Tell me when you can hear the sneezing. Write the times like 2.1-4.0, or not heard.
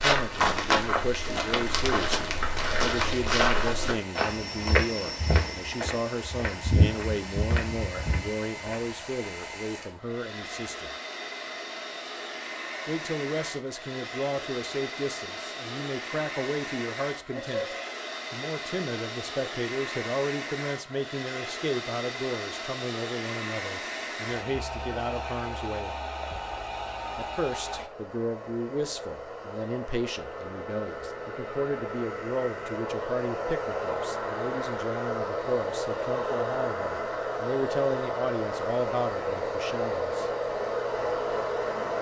17.3-17.9.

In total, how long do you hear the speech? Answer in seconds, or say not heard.
37 s.